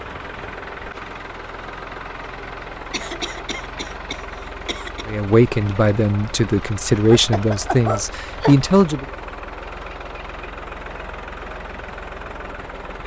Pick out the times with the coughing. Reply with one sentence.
The coughing can be heard from 2.9 to 5.0 s and from 7.0 to 8.6 s.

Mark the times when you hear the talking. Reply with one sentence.
The talking can be heard from 5.0 to 9.1 s.